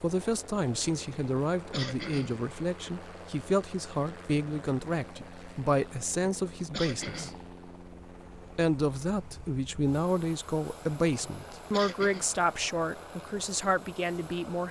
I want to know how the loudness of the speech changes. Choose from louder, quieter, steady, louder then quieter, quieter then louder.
steady.